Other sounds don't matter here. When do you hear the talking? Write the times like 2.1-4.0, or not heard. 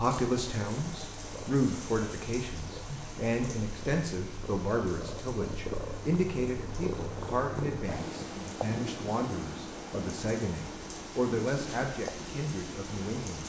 0.0-13.4.